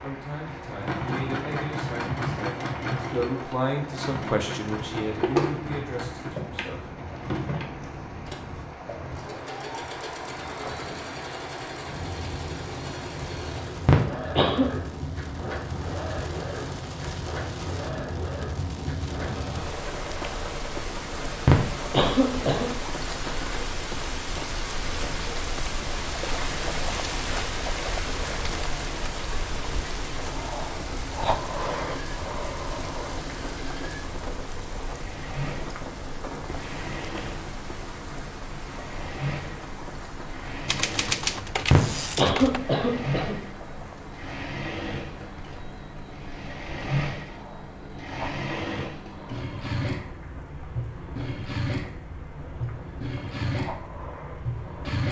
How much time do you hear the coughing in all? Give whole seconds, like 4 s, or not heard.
4 s.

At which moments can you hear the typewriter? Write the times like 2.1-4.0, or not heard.
40.6-42.6.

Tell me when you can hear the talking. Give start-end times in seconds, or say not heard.
0.0-7.0.